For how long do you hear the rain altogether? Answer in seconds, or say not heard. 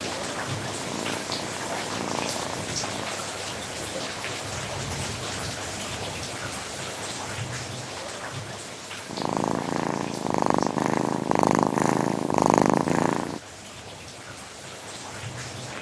16 s.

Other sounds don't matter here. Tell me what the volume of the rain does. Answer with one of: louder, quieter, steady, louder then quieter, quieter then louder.
quieter.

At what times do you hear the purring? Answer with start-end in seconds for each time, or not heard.
0.0-3.0, 9.1-13.4.